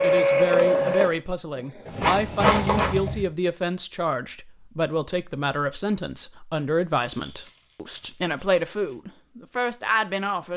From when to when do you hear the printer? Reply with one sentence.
The printer can be heard from 0.0 to 3.0 s.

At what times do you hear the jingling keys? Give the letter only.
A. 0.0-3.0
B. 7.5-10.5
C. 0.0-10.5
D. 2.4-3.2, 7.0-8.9
D.